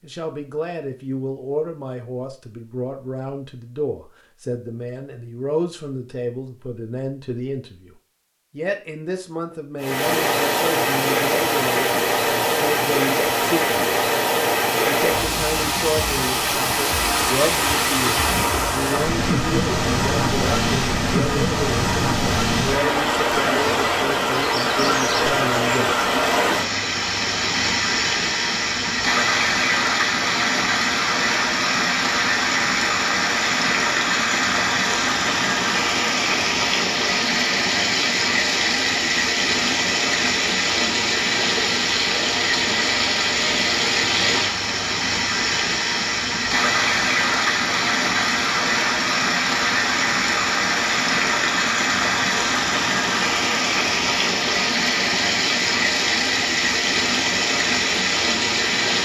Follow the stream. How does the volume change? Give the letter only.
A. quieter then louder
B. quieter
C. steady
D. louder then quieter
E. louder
C.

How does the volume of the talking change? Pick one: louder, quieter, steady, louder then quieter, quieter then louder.
steady.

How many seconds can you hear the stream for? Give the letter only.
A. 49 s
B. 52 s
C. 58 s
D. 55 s
A.